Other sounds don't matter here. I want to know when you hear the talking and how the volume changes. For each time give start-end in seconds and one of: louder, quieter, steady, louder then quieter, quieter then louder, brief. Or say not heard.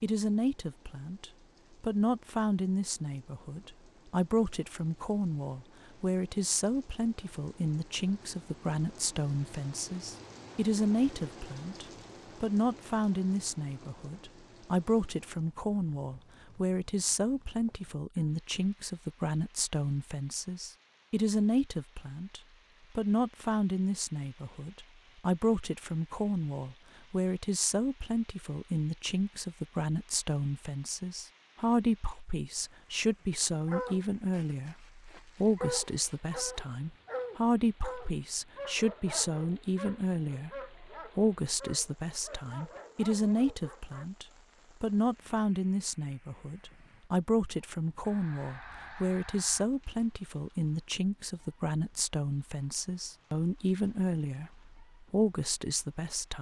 0.0-56.3 steady.